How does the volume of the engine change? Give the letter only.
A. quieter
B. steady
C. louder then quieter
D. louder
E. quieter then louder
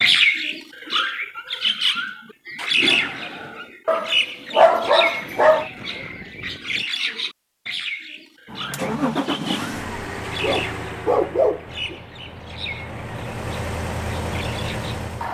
E.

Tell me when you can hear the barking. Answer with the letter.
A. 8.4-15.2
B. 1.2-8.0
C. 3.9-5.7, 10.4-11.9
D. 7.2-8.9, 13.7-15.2
C.